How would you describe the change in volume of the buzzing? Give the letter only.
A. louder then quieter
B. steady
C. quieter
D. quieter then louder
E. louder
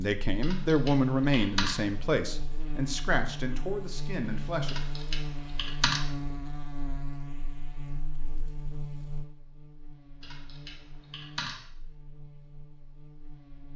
C.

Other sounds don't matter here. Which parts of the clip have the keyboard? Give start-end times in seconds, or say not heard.
0.4-1.8, 4.7-6.0, 10.2-11.6.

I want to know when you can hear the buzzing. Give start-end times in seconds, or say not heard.
0.0-13.7.